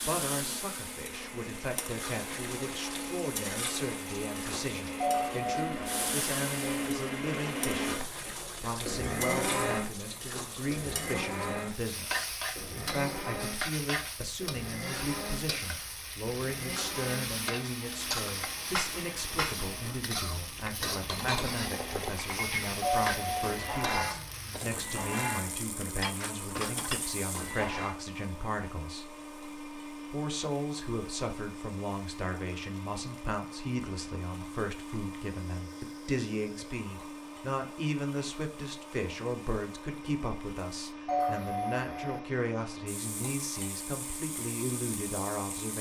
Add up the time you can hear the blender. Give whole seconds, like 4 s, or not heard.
46 s.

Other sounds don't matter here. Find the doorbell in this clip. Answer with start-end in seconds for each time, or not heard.
5.0-6.2, 22.8-23.9, 41.0-42.2.